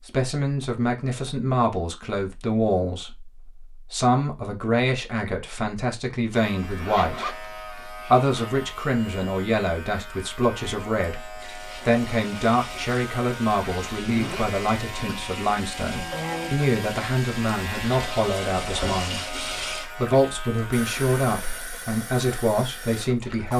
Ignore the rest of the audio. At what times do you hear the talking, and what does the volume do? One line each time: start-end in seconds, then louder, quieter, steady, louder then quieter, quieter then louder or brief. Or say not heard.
0.1-23.5 steady.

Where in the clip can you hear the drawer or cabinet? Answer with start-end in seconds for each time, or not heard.
not heard.